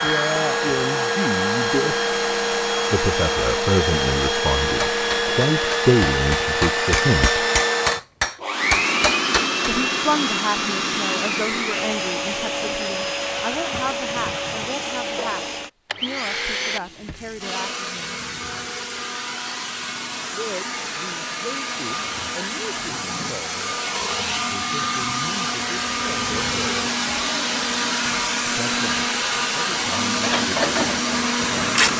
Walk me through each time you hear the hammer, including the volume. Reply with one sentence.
The hammer can be heard from 4.8 to 9.5 s, getting louder.